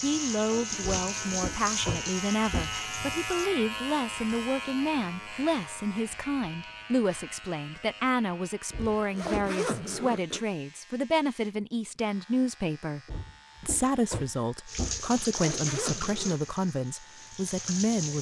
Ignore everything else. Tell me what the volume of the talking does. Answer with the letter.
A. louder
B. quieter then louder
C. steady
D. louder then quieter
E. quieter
C.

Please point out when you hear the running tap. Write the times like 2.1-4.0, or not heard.
0.0-3.5, 14.7-18.1.